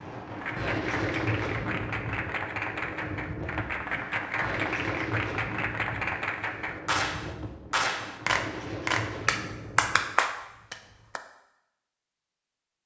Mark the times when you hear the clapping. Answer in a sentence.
The clapping can be heard from 0.3 to 11.2 s.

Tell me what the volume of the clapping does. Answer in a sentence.
The loudness of the clapping goes up.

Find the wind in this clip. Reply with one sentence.
The wind can be heard from 0.0 to 10.2 s.